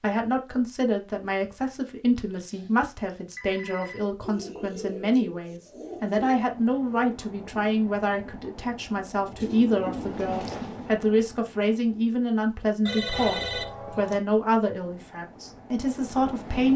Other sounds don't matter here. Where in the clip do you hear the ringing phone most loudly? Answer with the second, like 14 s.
13 s.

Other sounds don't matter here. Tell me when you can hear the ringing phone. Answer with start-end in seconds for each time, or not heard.
2.4-4.0, 12.8-14.2.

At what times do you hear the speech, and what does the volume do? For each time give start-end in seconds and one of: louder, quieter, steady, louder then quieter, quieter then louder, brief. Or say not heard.
0.0-16.7 steady.